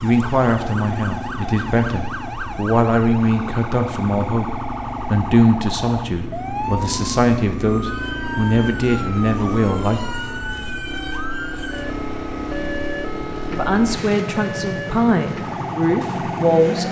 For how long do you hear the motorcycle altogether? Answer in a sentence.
The motorcycle can be heard for 17 seconds in total.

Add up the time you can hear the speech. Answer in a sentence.
The speech can be heard for 13 seconds in total.